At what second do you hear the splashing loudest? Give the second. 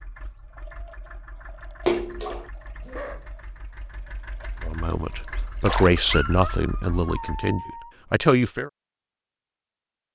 2 s.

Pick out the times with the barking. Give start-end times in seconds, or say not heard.
2.8-3.3, 6.1-7.9.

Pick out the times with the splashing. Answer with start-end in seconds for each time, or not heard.
1.9-2.5, 5.6-6.5.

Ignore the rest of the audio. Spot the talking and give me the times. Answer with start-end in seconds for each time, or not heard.
4.7-8.7.